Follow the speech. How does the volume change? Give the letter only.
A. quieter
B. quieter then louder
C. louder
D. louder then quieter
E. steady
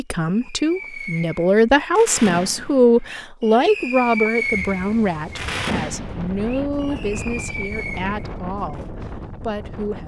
A.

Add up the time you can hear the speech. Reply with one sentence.
You can hear the speech for 10 seconds altogether.